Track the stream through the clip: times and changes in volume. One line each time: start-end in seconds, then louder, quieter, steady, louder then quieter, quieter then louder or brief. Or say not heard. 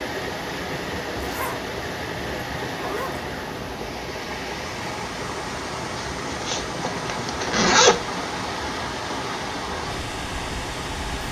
0.0-11.2 steady.